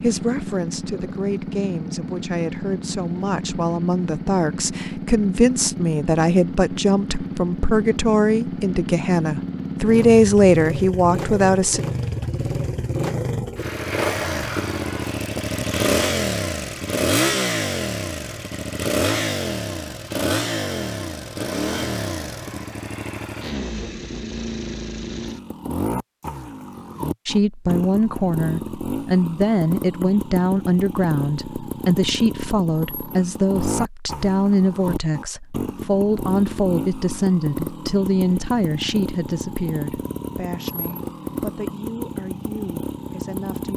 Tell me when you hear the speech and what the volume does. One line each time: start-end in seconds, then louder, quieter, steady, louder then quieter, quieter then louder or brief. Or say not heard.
0.0-11.8 louder
27.2-43.7 quieter.